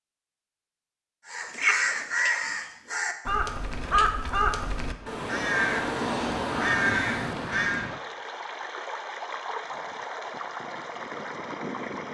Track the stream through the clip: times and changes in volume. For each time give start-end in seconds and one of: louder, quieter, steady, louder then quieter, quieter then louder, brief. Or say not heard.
5.0-12.0 steady.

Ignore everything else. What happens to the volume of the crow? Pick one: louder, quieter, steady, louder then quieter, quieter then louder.
steady.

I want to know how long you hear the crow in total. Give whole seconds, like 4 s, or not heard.
7 s.